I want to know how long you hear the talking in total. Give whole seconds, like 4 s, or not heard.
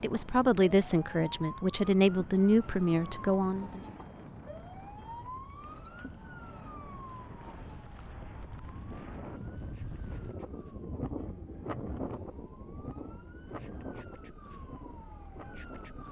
4 s.